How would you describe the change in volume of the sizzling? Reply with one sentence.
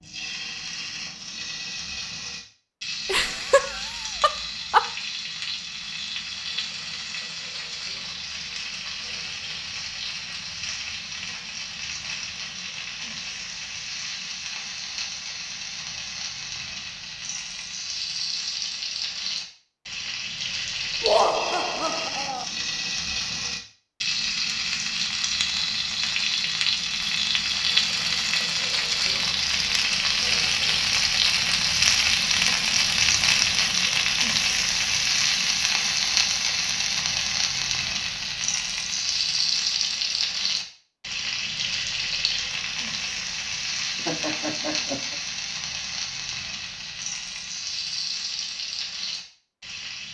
The loudness of the sizzling goes up, then down.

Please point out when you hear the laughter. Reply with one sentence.
The laughter can be heard from 3.0 to 4.8 s, from 21.0 to 22.4 s and from 44.0 to 45.1 s.